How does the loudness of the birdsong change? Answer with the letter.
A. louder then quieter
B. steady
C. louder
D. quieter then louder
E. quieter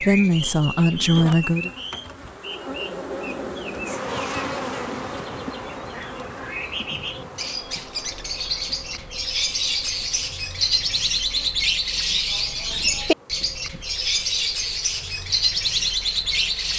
C.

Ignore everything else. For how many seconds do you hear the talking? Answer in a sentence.
You can hear the talking for 2 seconds altogether.